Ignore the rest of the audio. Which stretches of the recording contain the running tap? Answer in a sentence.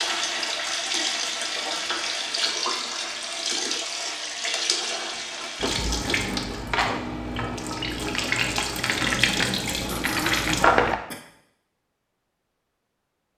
The running tap can be heard from 0.0 to 11.0 s.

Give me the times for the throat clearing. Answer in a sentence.
You can hear the throat clearing from 9.8 to 11.2 s.